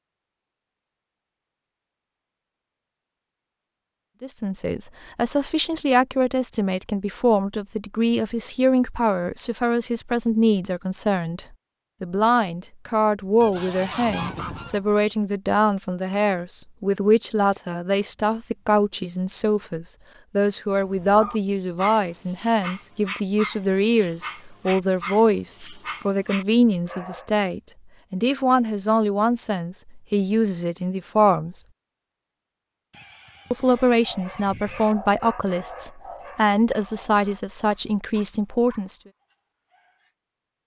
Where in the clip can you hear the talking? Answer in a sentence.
You can hear the talking from 4.2 to 31.6 s and from 33.5 to 39.0 s.